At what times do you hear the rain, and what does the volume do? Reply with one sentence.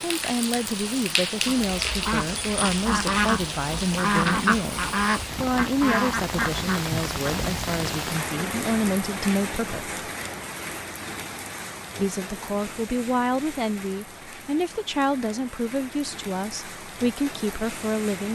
You can hear the rain from 0.0 to 18.2 s, getting quieter.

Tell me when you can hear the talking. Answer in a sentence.
You can hear the talking from 0.0 to 9.9 s and from 11.9 to 18.2 s.